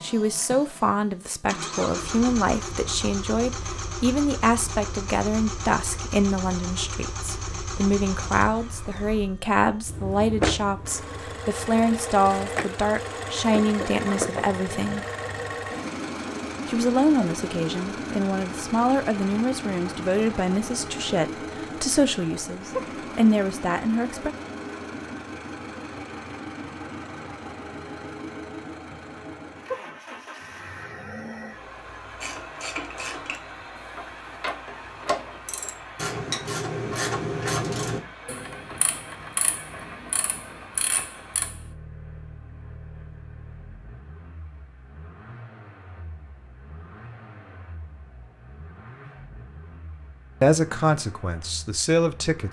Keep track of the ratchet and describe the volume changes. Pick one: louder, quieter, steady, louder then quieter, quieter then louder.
louder then quieter.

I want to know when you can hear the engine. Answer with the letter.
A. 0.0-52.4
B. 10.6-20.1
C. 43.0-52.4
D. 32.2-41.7
A.